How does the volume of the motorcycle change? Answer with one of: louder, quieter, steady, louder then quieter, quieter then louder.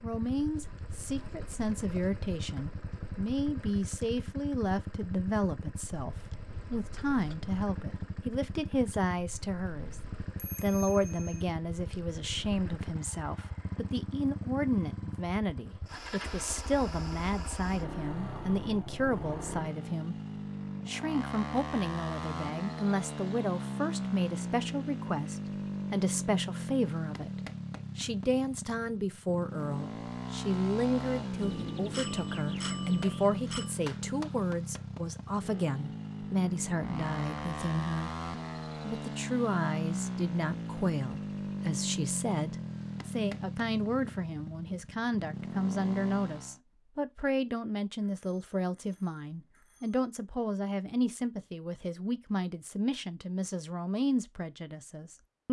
louder.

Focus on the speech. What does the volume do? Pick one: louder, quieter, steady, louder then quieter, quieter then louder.
steady.